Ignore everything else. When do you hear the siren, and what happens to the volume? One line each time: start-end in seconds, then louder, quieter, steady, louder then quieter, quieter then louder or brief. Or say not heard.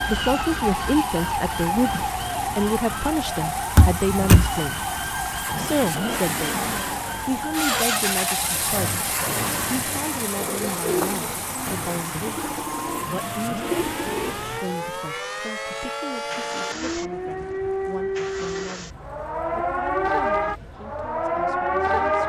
0.0-22.2 quieter then louder.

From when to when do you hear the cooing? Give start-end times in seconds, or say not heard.
10.3-14.6.